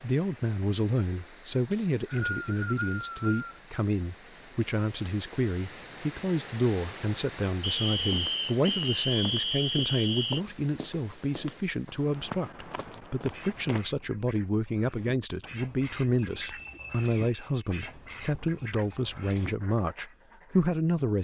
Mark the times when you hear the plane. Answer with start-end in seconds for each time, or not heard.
not heard.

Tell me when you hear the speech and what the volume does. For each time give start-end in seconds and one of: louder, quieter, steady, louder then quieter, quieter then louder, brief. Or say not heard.
0.0-21.1 steady.